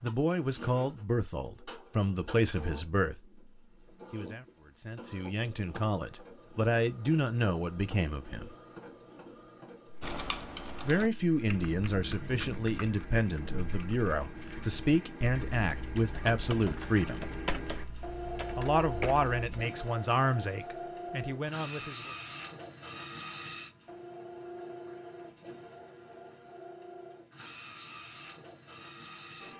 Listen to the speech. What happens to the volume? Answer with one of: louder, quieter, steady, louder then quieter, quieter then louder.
steady.